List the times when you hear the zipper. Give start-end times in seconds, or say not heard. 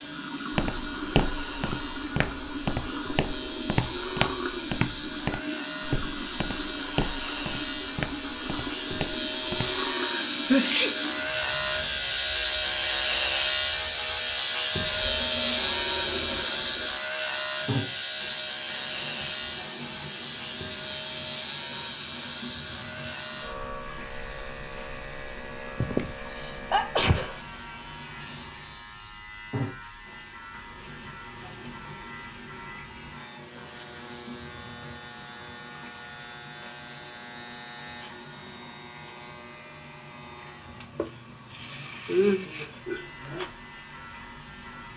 not heard.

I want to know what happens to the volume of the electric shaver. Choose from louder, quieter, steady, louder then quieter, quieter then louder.
louder then quieter.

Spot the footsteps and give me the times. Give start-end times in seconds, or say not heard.
0.5-9.8.